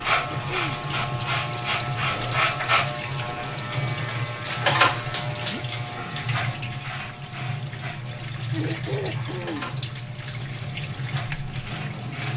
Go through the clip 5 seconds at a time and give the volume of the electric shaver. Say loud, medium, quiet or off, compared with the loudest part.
loud, medium, quiet.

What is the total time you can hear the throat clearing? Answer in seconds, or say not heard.
3 s.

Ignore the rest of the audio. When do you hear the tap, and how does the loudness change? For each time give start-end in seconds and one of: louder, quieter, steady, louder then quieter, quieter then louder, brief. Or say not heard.
0.0-12.3 steady.